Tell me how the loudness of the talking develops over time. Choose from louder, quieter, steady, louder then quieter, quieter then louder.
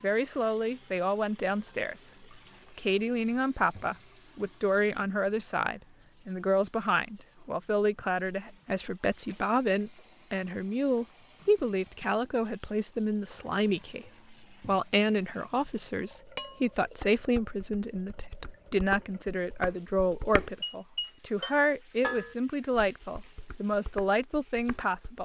steady.